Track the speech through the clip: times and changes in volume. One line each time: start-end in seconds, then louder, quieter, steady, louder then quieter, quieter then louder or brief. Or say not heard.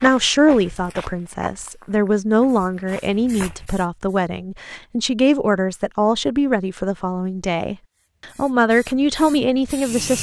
0.0-10.1 steady.